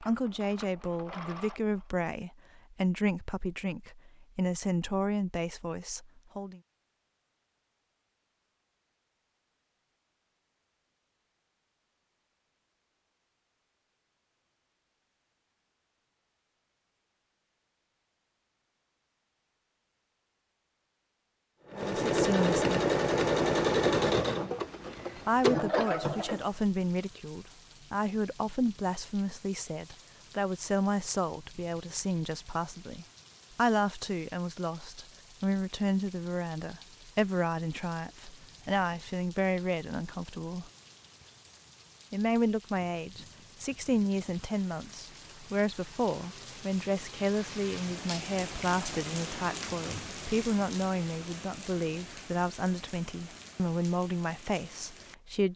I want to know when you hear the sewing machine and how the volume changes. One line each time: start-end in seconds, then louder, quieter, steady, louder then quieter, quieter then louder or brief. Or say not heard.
0.0-1.9 brief
21.6-26.4 quieter then louder.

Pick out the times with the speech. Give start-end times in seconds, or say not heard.
0.0-6.6, 21.7-22.9, 25.2-40.7, 42.1-55.5.